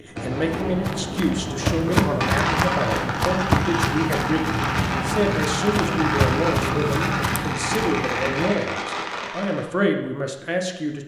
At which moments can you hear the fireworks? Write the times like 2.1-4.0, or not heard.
0.1-9.7.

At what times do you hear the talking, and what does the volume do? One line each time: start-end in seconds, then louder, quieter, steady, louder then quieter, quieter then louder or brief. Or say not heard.
0.0-11.0 steady.